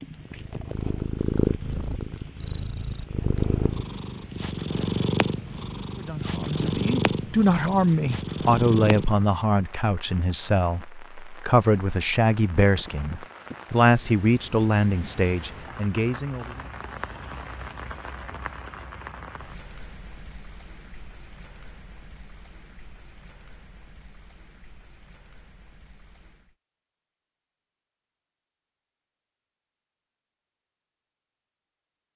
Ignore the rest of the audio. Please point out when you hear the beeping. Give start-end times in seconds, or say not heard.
not heard.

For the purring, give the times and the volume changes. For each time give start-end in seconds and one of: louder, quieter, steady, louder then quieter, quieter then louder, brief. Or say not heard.
0.0-9.3 steady.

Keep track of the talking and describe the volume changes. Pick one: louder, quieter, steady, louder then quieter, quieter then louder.
steady.